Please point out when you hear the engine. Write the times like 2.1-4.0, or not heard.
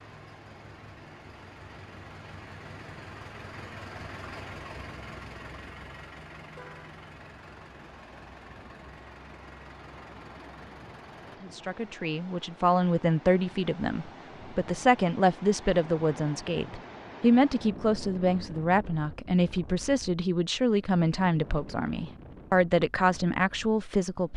0.0-11.4.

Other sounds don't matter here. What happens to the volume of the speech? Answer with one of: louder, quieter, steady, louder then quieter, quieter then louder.
steady.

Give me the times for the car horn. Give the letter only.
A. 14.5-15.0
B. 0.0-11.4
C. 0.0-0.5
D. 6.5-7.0
D.